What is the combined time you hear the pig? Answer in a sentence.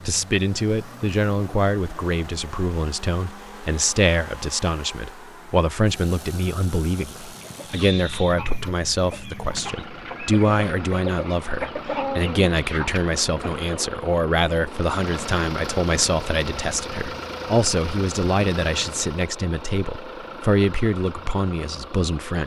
The pig can't be heard in this clip.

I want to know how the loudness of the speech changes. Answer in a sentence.
The volume of the speech stays about the same.